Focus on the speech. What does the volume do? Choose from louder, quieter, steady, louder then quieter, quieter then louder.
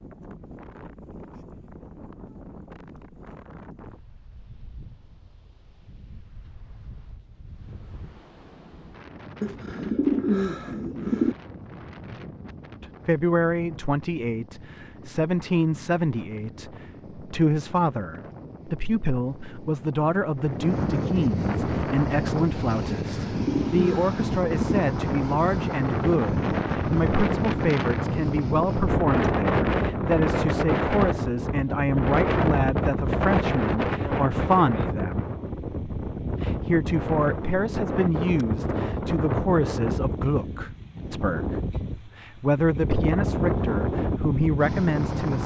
steady.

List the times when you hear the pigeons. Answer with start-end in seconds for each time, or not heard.
9.4-11.3, 23.1-24.9.